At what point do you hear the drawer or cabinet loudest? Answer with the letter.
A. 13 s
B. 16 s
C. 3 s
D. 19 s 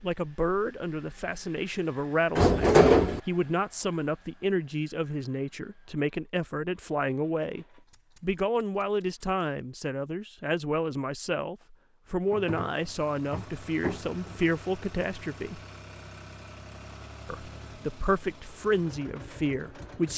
C.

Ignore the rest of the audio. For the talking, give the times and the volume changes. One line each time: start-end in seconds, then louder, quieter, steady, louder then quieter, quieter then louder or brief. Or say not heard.
0.0-15.6 steady
17.2-20.1 brief.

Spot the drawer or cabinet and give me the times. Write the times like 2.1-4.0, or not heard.
2.4-3.2, 12.2-14.6.